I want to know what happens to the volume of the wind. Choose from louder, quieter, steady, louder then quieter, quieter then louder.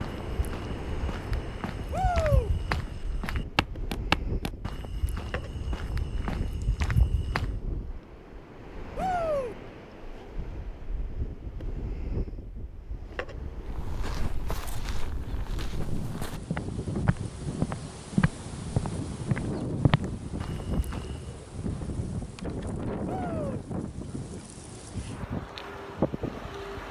louder.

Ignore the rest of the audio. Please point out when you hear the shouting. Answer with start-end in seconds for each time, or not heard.
1.9-2.5, 8.9-9.6, 23.1-23.6.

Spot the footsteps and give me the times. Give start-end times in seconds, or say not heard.
0.0-7.5, 13.6-21.4.